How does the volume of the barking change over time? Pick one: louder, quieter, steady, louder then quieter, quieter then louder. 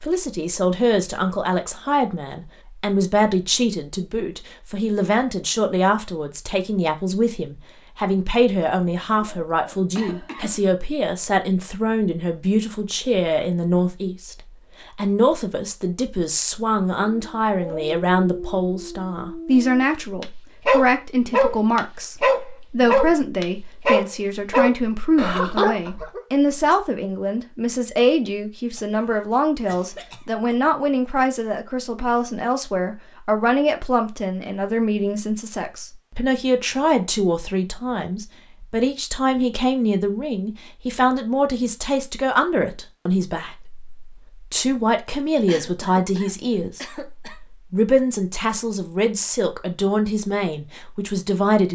louder.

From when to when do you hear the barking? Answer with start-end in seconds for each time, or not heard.
17.1-26.2.